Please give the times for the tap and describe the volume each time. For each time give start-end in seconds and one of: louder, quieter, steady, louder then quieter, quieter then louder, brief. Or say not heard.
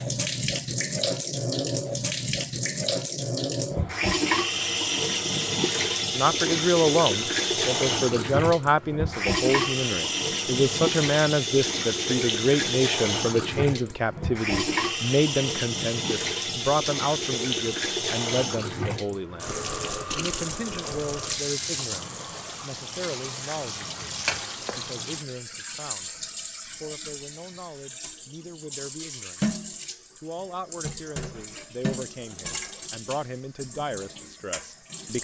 0.0-35.1 quieter.